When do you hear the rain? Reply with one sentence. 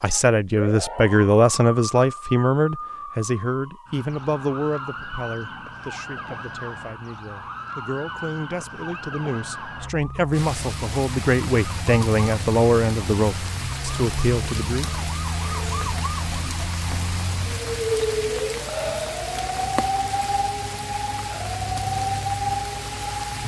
You can hear the rain from 10.3 to 23.4 s.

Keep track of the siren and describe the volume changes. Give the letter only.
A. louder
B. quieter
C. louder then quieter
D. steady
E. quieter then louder
A.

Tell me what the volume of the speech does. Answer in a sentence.
The volume of the speech goes down, then up.